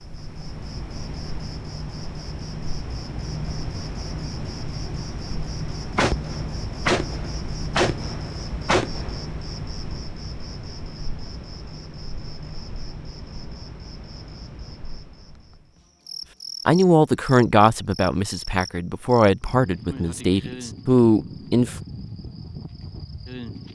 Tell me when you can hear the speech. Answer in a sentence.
The speech can be heard from 16.6 to 21.8 s.